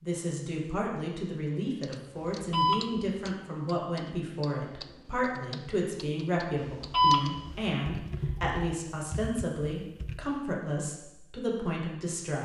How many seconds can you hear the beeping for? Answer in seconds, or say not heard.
2 s.